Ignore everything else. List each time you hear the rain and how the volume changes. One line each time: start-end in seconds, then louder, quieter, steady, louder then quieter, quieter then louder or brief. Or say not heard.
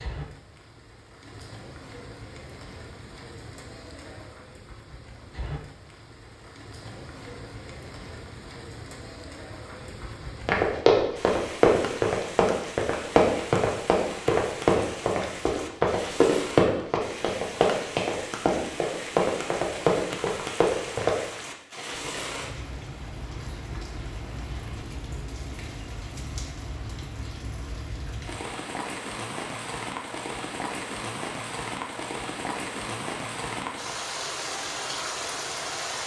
0.0-36.0 louder.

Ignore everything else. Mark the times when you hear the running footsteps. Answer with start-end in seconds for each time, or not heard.
10.4-21.1.